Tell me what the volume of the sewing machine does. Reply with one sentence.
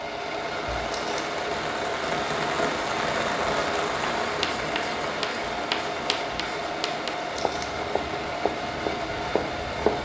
The loudness of the sewing machine stays about the same.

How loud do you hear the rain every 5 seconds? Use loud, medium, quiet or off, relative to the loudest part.
loud, medium.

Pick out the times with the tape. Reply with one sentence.
The tape can be heard from 0.8 to 1.3 s and from 7.3 to 7.8 s.